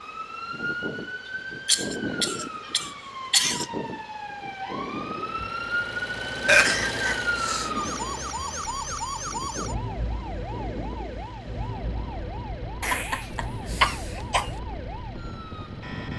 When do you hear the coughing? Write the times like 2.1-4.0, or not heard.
1.6-3.6, 6.5-7.7, 12.8-14.5.